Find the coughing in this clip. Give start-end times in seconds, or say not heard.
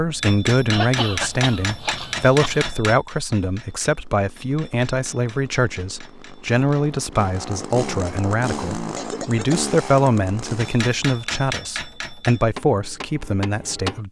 0.7-2.6, 8.9-9.7.